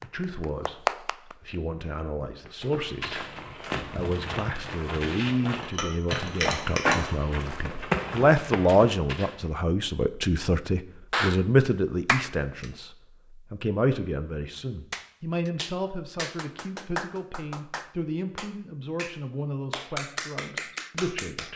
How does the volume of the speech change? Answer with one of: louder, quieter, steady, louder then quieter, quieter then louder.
louder then quieter.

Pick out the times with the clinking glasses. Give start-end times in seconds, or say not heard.
5.6-7.0.